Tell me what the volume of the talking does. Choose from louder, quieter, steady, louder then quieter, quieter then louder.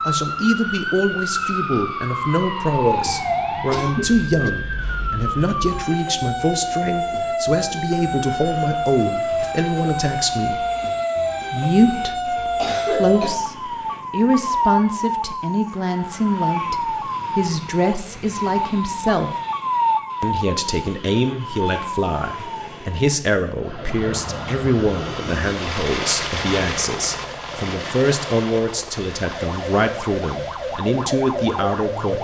steady.